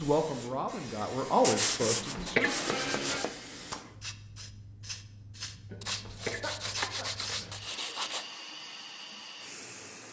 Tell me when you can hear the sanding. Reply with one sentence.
You can hear the sanding from 1.4 to 3.4 s and from 5.8 to 8.2 s.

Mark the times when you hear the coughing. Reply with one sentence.
The coughing can be heard from 1.8 to 2.5 s and from 5.7 to 7.6 s.